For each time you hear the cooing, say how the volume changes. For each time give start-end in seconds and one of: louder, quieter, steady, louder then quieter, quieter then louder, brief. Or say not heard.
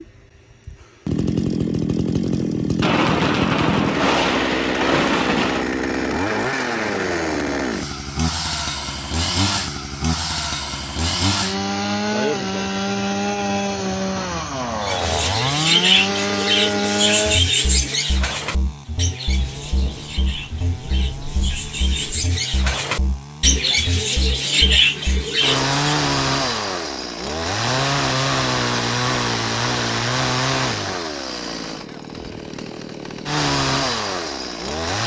14.8-25.7 quieter then louder.